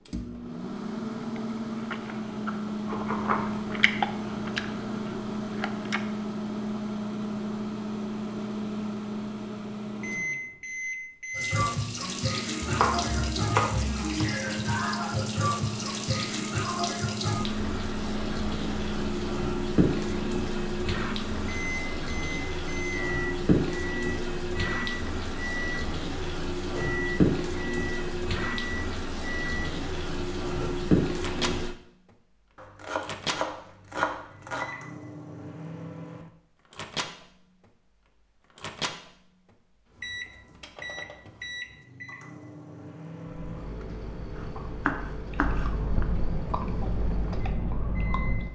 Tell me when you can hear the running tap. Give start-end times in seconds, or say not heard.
11.3-31.8.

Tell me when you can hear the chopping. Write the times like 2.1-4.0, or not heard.
2.9-3.8, 12.6-14.3, 32.5-34.7, 44.4-46.0.